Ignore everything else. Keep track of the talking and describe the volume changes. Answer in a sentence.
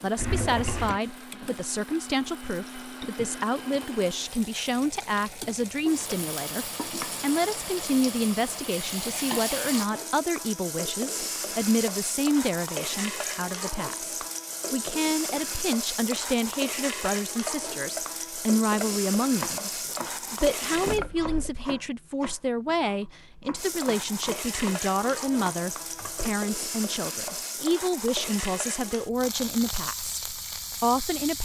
The volume of the talking stays about the same.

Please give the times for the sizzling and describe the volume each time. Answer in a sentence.
The sizzling can be heard from 0.0 to 21.0 s, getting louder; and from 23.6 to 31.3 s, at a steady volume.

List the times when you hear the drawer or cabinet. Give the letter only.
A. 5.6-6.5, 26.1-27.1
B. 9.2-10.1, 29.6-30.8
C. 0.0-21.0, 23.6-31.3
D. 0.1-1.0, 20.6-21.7
D.